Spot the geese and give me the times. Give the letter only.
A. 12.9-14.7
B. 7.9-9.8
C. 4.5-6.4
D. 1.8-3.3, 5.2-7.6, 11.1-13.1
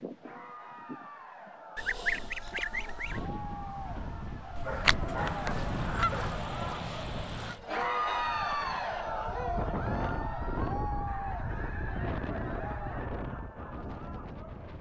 D.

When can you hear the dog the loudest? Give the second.
5 s.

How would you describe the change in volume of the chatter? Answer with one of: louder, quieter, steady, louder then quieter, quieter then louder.
louder then quieter.